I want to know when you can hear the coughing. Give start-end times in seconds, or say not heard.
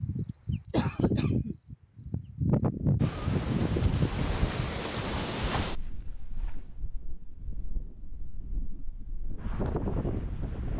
0.7-1.6.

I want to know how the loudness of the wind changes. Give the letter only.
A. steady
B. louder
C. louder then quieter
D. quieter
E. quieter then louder
E.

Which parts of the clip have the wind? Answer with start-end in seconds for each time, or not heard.
3.0-10.7.